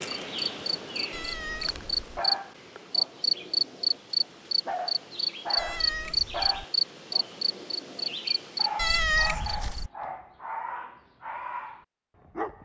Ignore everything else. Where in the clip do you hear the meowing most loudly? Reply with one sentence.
The loudest moment of the meowing is at 9 seconds.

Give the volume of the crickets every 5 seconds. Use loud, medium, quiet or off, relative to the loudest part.
loud, loud, off.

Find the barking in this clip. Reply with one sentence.
The barking can be heard from 2.1 to 12.6 s.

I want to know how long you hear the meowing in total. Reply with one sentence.
You can hear the meowing for 3 seconds altogether.